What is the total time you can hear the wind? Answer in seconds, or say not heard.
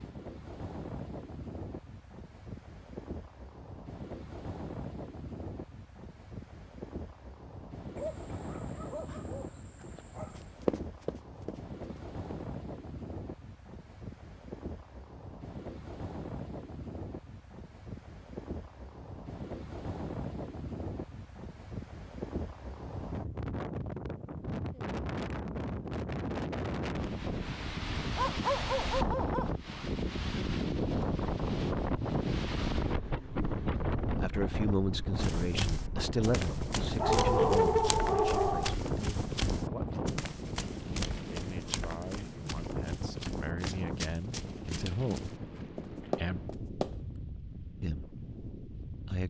49 s.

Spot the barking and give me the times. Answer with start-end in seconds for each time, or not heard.
8.0-10.6, 28.1-29.6, 37.0-38.8.